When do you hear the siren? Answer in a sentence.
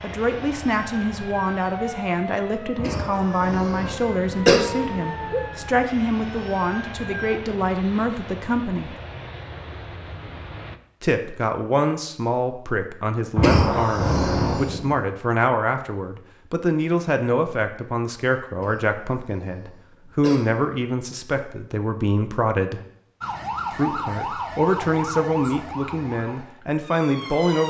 The siren can be heard from 0.0 to 7.4 s and from 23.2 to 27.6 s.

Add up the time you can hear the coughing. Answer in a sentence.
The coughing can be heard for 5 seconds in total.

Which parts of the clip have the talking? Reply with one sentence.
The talking can be heard from 0.0 to 8.9 s, from 11.0 to 22.8 s and from 23.7 to 27.6 s.